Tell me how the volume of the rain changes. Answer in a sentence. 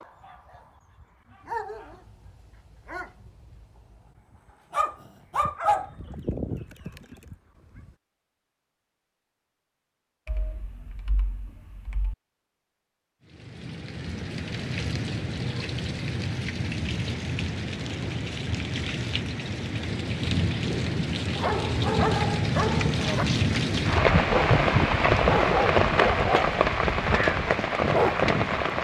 The loudness of the rain goes up.